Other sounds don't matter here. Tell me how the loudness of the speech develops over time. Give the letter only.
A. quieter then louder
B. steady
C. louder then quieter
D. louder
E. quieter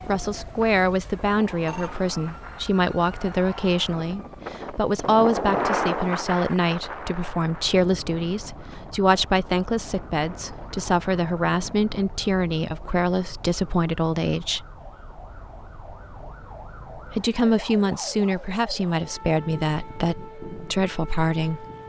B.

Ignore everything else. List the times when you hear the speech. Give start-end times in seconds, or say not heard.
0.1-14.7, 17.1-21.6.